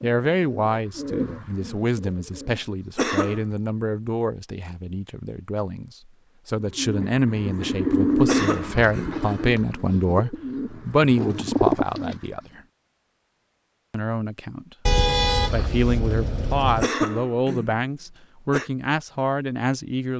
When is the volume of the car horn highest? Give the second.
15 s.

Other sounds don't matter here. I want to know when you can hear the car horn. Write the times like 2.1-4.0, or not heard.
14.8-16.9.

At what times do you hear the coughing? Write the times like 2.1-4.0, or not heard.
3.0-3.5, 8.2-9.2, 16.8-18.7.